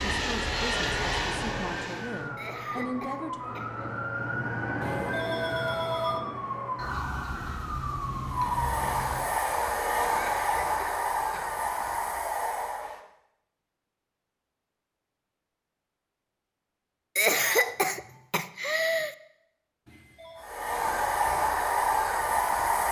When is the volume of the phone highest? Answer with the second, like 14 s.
6 s.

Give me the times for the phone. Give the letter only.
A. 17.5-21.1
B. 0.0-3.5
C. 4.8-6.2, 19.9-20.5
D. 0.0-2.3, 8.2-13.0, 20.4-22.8
C.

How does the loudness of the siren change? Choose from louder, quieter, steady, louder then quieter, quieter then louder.
louder.